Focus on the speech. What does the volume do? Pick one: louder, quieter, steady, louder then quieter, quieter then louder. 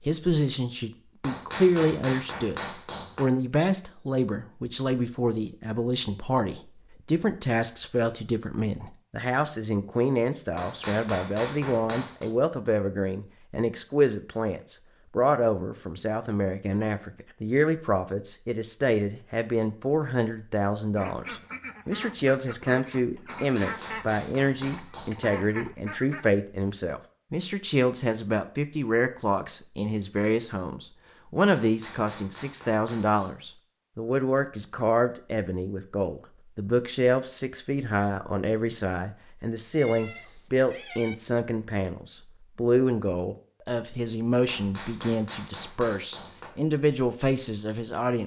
steady.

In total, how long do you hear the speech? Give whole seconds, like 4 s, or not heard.
48 s.